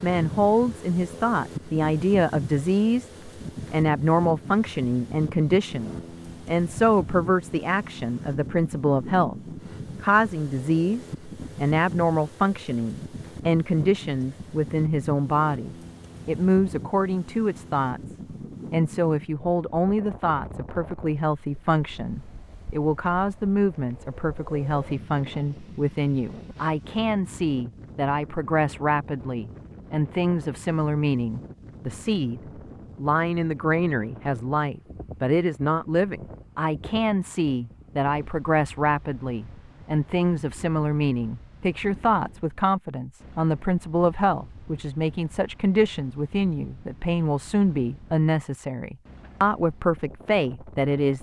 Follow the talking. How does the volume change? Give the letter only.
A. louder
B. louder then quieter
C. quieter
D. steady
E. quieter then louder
D.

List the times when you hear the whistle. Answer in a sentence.
You can't hear the whistle here.